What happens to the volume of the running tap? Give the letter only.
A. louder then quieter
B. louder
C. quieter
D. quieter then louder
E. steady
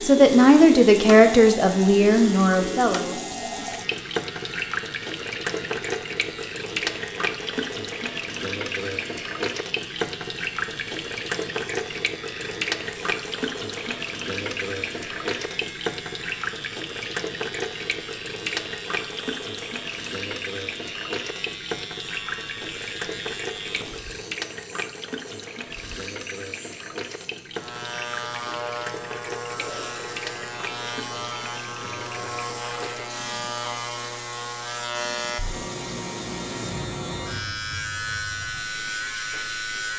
C.